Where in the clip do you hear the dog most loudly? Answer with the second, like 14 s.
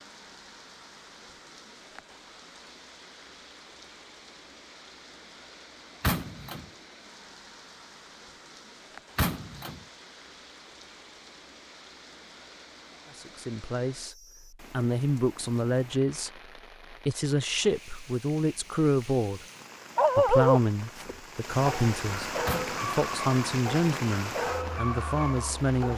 20 s.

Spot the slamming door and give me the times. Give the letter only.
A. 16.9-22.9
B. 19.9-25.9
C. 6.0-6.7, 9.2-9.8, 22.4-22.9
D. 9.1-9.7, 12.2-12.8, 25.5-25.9
C.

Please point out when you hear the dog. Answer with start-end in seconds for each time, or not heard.
19.9-25.9.